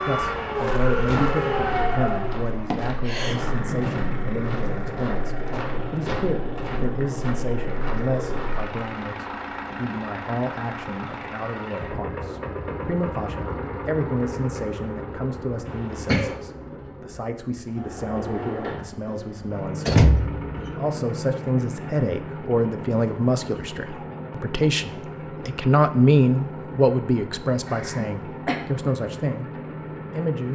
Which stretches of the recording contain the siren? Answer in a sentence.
The siren can be heard from 0.0 to 2.4 s.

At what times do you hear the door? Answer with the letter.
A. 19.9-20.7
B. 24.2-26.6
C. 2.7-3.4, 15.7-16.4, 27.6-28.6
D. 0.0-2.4
A.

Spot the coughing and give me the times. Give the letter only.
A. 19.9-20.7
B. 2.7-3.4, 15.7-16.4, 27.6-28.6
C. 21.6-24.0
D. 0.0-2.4
B.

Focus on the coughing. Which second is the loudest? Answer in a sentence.
The volume of the coughing peaks at 16 seconds.